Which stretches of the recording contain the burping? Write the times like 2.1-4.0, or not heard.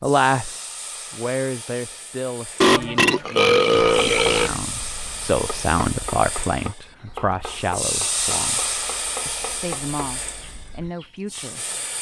2.6-4.6.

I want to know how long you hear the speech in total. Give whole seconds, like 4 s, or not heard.
12 s.